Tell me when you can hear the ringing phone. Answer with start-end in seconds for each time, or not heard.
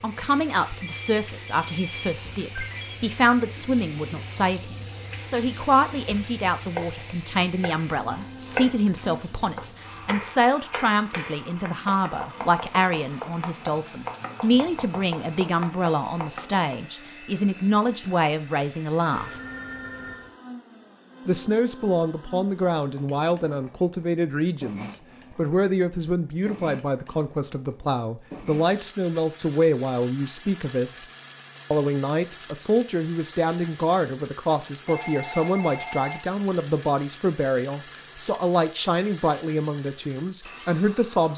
0.8-3.0, 19.1-20.4, 34.8-36.2.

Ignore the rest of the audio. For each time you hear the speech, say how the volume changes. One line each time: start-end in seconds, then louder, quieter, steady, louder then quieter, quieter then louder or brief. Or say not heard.
0.0-19.4 steady
21.2-31.0 steady
31.7-41.3 steady.